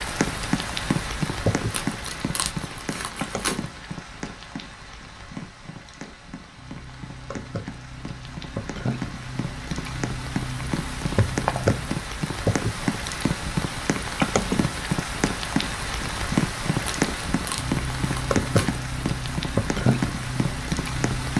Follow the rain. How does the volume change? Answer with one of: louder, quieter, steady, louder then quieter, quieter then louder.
quieter then louder.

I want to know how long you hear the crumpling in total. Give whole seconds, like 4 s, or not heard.
4 s.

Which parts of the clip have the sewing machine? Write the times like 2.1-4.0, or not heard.
not heard.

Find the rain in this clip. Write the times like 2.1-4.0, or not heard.
0.0-21.3.